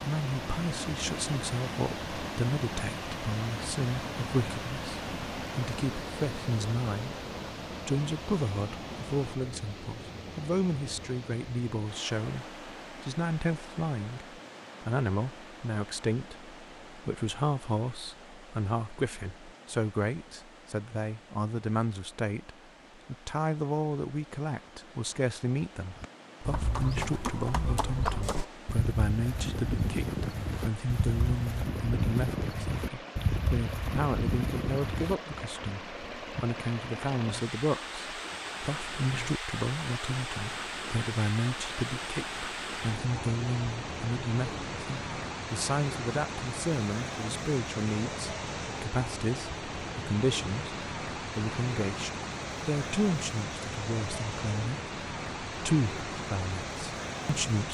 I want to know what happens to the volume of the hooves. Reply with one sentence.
The volume of the hooves stays about the same.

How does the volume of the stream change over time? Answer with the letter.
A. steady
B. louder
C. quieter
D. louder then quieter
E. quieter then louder
E.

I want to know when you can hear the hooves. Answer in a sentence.
The hooves can be heard from 25.9 to 35.1 s.